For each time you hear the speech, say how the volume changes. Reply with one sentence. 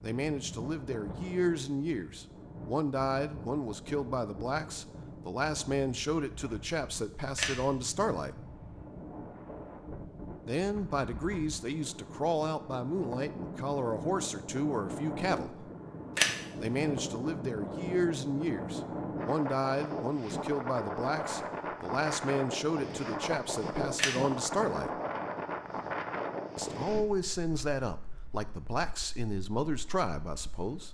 The speech can be heard from 0.0 to 8.4 s, at a steady volume; from 10.4 to 15.7 s, at a steady volume; from 16.6 to 24.9 s, at a steady volume; and from 26.6 to 30.8 s, at a steady volume.